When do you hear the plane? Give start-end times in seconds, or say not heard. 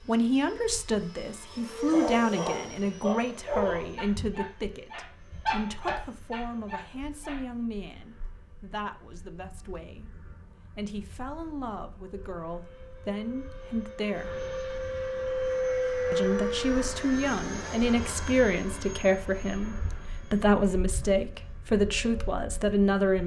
0.0-23.2.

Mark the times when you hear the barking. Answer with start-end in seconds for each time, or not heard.
1.9-7.4.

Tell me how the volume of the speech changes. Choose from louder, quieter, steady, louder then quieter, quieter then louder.
quieter then louder.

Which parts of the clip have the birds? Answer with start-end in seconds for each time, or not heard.
not heard.